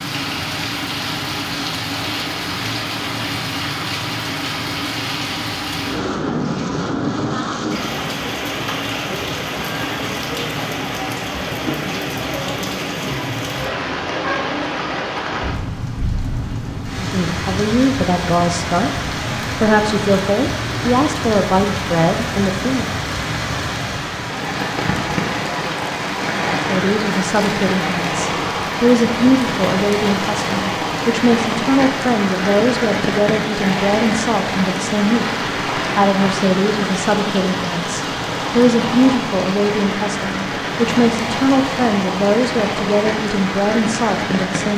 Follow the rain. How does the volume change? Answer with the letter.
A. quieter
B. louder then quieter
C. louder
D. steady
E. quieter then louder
D.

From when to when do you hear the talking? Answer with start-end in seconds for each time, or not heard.
16.9-18.9, 19.6-22.9, 26.6-44.7.